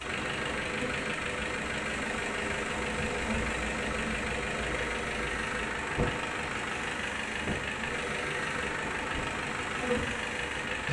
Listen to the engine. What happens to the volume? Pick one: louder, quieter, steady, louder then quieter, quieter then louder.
steady.